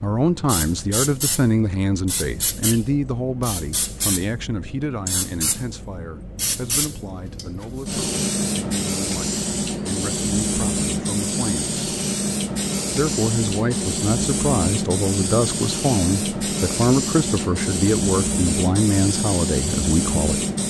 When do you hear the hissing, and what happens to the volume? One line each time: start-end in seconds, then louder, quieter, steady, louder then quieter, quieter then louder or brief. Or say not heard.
0.1-20.6 louder.